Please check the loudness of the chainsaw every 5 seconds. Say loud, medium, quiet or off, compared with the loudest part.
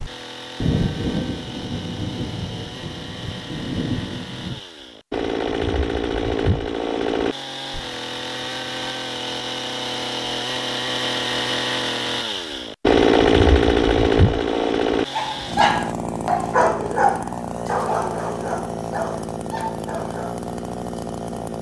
quiet, medium, loud, medium, medium.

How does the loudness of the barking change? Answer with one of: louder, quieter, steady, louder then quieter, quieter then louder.
quieter.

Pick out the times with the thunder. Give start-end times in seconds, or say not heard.
0.6-4.6.